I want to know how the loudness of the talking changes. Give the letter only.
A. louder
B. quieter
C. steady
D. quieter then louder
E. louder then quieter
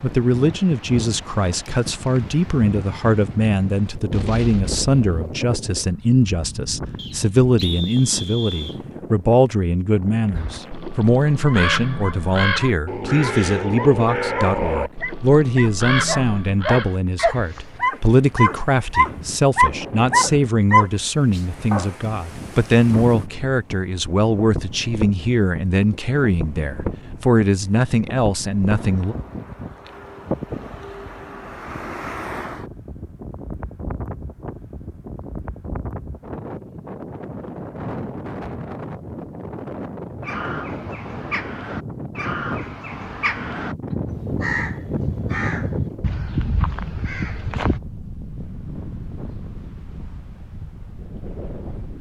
C.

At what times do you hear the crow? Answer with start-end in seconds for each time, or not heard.
10.3-17.9, 40.2-47.8.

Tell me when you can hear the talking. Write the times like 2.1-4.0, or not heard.
0.0-29.1.